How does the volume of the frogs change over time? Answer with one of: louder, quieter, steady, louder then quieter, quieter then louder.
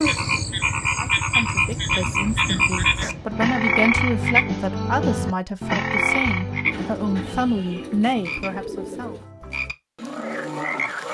quieter.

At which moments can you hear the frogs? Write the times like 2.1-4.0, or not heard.
0.0-11.0.